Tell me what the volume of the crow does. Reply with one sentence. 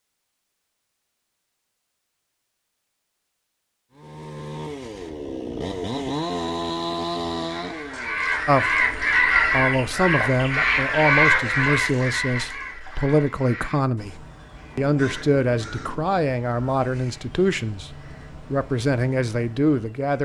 The volume of the crow goes down.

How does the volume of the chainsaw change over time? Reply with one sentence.
The loudness of the chainsaw goes up, then down.